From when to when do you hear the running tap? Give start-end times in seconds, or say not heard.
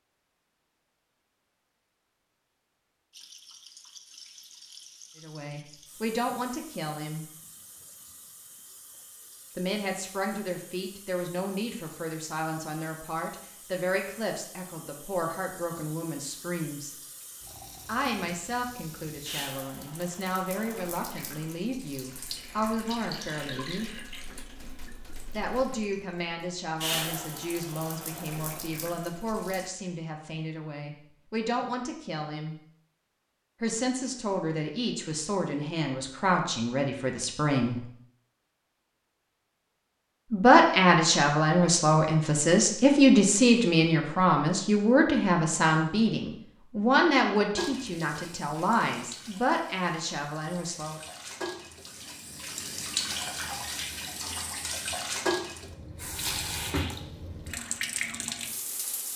3.1-29.7, 47.5-59.1.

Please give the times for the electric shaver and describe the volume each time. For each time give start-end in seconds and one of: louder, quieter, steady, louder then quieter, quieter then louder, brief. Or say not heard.
not heard.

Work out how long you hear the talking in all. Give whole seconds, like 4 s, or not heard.
38 s.